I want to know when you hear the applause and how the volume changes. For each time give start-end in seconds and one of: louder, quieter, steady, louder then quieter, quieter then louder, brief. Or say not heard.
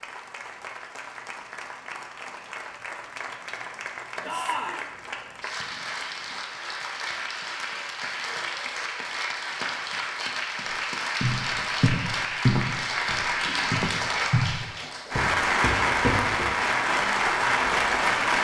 0.0-18.3 louder.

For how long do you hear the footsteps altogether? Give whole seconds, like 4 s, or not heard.
5 s.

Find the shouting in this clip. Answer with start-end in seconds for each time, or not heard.
4.2-4.8.